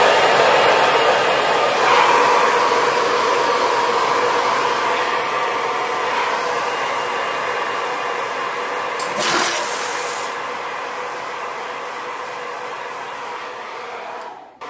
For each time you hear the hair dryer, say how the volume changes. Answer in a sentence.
You can hear the hair dryer from 0.0 to 14.6 s, getting quieter.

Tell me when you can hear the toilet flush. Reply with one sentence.
You can hear the toilet flush from 8.9 to 10.3 s.